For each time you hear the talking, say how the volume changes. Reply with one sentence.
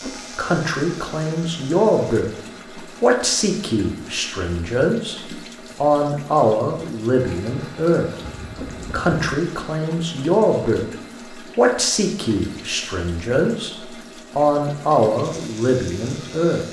The talking can be heard briefly from 0.0 to 2.3 s; briefly from 3.0 to 5.2 s; from 5.8 to 10.8 s, at a steady volume; briefly from 11.6 to 13.8 s; and briefly from 14.3 to 16.6 s.